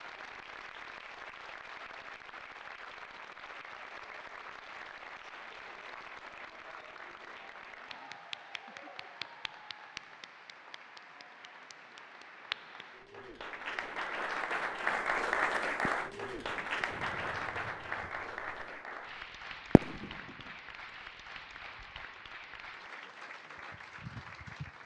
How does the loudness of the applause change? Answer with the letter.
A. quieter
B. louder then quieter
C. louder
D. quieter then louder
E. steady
B.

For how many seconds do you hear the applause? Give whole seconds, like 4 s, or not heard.
25 s.